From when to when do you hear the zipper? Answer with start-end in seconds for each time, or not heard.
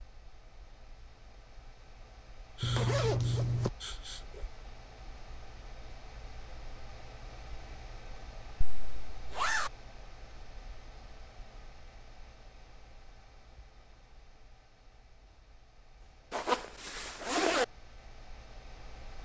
2.6-3.7, 8.6-9.7, 16.3-17.6.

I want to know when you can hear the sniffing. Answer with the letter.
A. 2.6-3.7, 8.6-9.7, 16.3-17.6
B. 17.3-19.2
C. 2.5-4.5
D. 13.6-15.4
C.